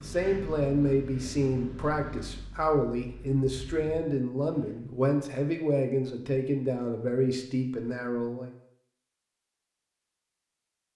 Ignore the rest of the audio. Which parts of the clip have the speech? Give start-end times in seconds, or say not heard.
0.0-8.5.